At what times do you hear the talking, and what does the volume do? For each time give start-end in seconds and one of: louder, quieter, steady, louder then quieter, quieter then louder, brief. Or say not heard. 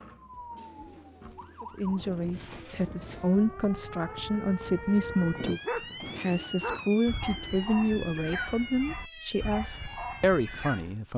1.6-11.1 steady.